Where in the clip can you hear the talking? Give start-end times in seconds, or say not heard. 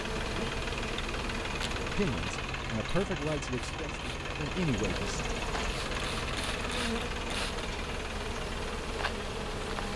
1.8-5.2.